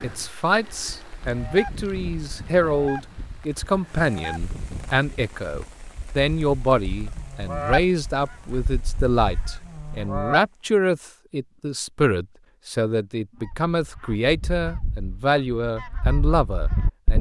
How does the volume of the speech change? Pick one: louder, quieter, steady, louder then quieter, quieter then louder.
steady.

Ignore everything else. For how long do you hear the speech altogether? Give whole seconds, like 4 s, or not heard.
17 s.